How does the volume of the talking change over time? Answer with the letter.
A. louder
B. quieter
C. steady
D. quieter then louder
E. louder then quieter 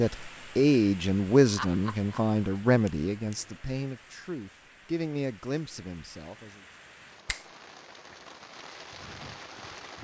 B.